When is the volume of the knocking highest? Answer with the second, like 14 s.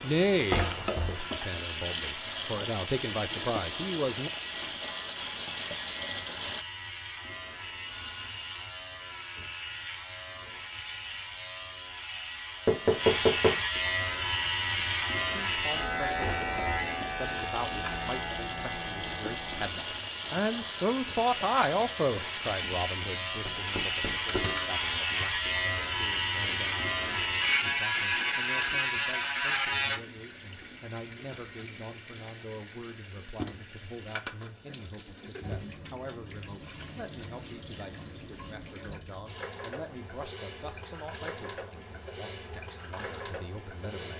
13 s.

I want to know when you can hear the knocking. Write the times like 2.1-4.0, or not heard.
12.7-13.6, 23.4-24.4.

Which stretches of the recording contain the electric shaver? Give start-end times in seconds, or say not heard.
0.0-30.0.